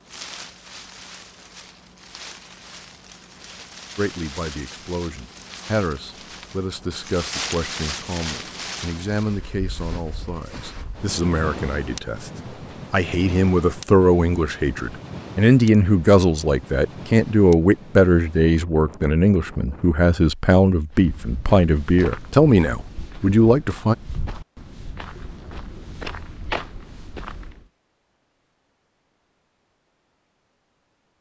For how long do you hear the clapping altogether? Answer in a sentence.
The clapping can't be heard in this clip.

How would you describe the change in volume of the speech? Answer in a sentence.
The loudness of the speech goes up.